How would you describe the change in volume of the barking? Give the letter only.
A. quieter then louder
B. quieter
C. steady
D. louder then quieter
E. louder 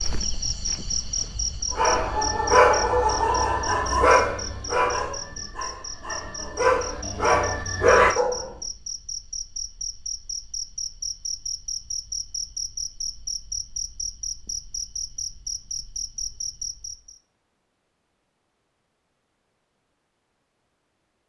A.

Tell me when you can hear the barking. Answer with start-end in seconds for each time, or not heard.
1.7-8.5.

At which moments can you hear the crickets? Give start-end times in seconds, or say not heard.
0.0-17.2.